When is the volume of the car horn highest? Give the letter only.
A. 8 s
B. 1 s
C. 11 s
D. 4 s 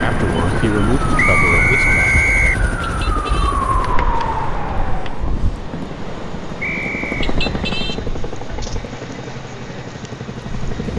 A.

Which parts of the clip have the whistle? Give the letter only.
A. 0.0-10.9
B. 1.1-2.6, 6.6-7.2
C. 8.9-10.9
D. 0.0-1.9
B.